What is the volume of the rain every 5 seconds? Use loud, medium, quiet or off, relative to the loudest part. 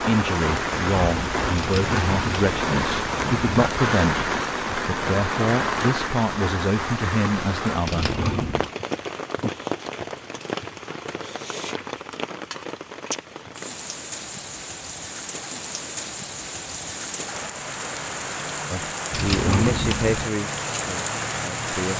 loud, loud, medium, medium, loud.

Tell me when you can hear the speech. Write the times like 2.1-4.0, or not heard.
0.0-8.2, 18.7-21.9.